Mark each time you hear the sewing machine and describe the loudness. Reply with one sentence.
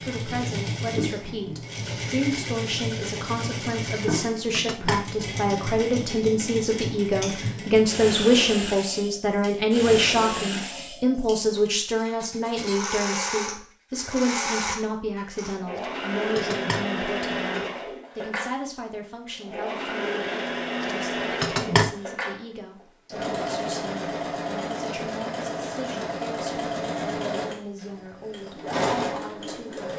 You can hear the sewing machine from 0.0 to 29.9 s, at a steady volume.